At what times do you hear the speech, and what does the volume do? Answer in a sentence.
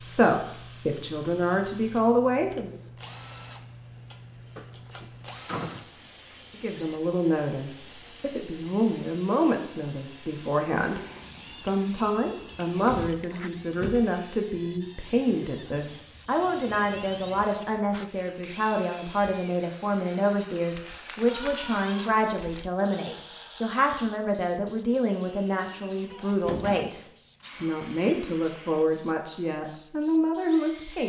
The speech can be heard briefly from 0.0 to 2.8 s; and from 6.5 to 31.0 s, at a steady volume.